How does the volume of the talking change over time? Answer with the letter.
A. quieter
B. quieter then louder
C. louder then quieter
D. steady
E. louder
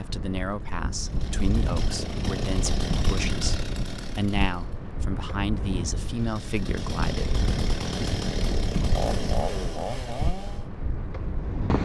D.